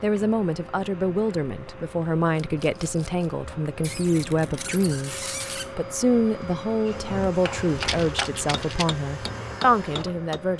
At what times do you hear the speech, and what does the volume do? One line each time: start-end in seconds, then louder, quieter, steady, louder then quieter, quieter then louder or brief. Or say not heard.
0.0-10.5 steady.